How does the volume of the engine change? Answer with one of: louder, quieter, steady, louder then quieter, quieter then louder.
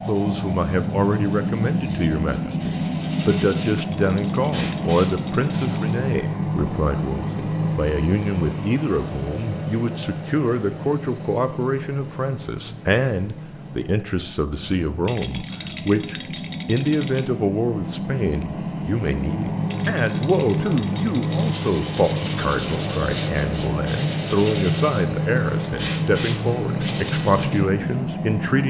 quieter then louder.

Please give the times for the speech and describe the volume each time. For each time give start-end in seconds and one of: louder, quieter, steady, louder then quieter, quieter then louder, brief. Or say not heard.
0.1-28.6 steady.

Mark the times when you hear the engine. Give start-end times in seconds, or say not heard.
0.0-28.6.